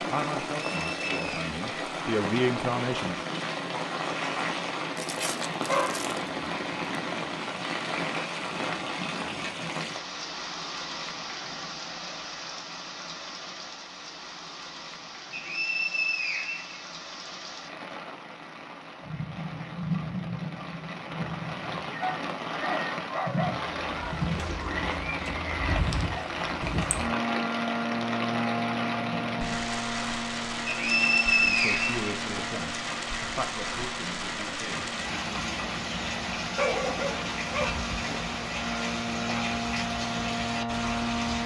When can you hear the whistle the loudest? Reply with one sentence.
The loudest moment of the whistle is at 31 seconds.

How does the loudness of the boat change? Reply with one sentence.
The loudness of the boat goes down, then up.